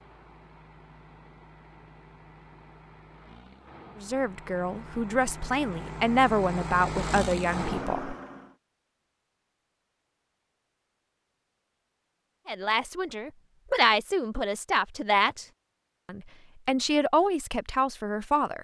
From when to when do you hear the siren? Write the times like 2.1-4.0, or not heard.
not heard.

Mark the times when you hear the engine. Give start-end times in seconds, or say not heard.
0.0-8.6.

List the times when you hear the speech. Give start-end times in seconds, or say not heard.
4.0-8.2, 12.4-15.4, 16.1-18.6.